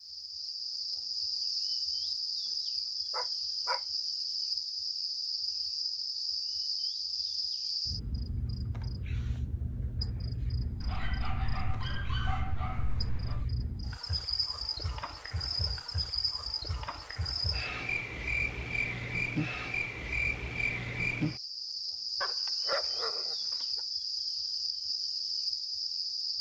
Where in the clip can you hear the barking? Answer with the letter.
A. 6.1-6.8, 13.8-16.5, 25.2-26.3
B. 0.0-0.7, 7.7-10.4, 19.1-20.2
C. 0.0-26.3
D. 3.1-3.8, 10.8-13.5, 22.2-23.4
D.